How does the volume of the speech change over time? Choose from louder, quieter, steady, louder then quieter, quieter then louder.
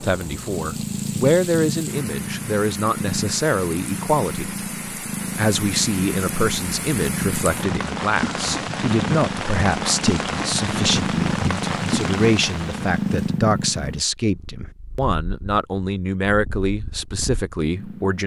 steady.